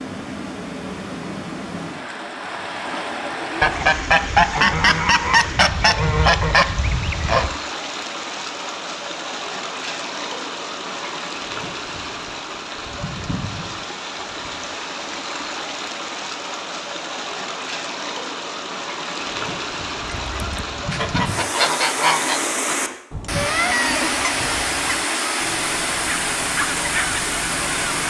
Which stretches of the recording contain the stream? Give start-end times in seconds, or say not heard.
0.0-28.0.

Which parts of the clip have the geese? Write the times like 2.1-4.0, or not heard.
3.6-7.5, 20.0-28.0.